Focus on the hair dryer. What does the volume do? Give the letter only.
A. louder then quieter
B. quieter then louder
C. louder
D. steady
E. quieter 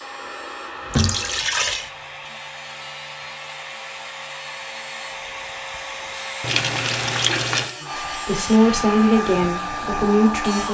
C.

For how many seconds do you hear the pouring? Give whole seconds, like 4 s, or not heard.
2 s.